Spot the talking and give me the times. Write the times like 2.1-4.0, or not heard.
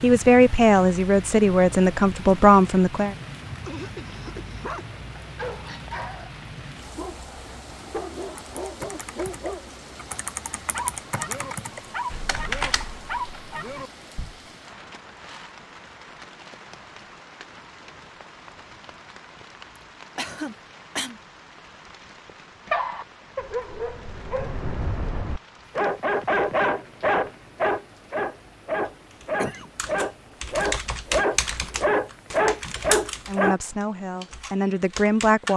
0.0-3.1, 33.2-35.5.